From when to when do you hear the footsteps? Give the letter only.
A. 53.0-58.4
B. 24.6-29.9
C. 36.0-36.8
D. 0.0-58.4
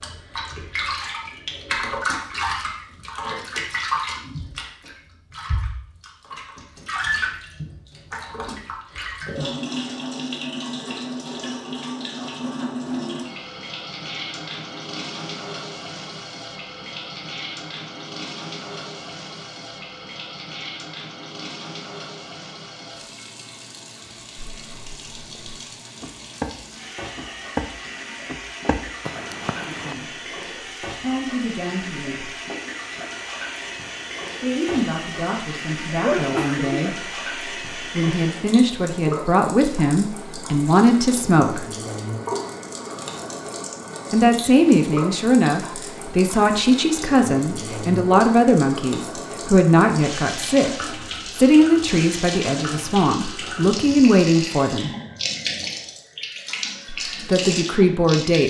B.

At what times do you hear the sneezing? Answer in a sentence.
The sneezing can be heard from 36.0 to 36.8 s.